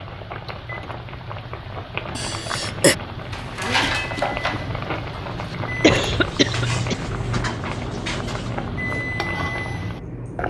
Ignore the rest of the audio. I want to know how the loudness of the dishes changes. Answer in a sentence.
The loudness of the dishes goes down, then up.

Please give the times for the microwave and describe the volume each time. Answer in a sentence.
You can hear the microwave from 0.0 to 10.4 s, getting louder.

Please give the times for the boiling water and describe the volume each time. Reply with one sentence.
The boiling water can be heard from 0.0 to 10.4 s, at a steady volume.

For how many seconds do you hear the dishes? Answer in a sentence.
You can hear the dishes for 5 seconds altogether.